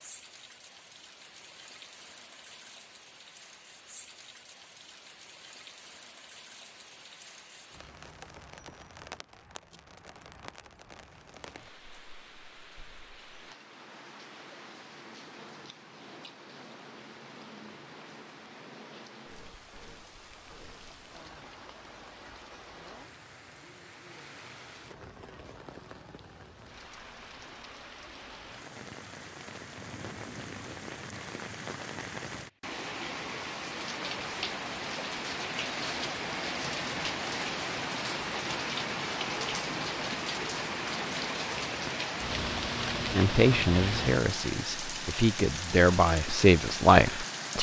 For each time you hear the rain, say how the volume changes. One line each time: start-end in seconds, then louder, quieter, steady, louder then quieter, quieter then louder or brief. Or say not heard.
0.0-47.5 louder.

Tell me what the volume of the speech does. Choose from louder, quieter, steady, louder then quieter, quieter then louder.
quieter then louder.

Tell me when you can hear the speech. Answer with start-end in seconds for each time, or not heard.
43.1-47.5.